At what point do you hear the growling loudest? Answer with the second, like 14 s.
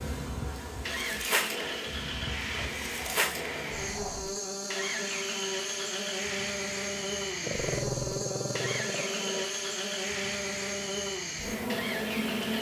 8 s.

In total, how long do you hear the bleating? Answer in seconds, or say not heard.
not heard.